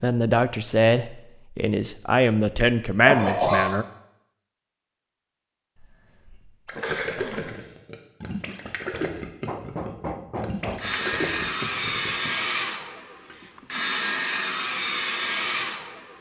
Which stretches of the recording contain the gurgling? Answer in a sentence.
The gurgling can be heard from 6.7 to 12.3 s.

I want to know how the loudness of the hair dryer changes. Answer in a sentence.
The loudness of the hair dryer goes down, then up.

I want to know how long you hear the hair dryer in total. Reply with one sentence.
You can hear the hair dryer for 5 seconds altogether.